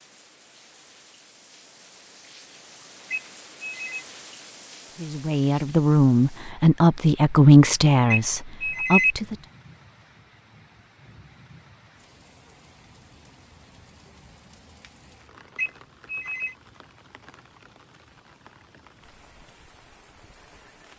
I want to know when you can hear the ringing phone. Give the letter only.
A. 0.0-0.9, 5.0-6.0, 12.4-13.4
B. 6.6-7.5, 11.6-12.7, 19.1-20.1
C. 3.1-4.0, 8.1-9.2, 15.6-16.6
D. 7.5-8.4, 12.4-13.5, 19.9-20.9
C.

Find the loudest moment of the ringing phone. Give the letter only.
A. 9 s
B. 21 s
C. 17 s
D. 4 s
A.